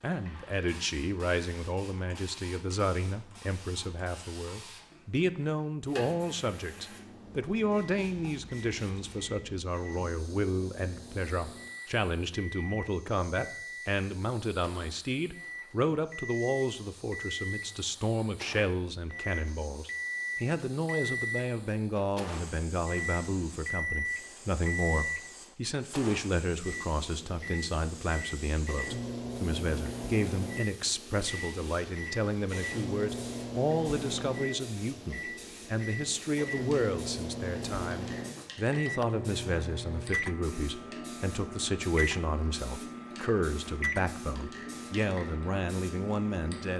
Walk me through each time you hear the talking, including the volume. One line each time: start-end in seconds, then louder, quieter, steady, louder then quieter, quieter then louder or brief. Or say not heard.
0.0-46.7 steady.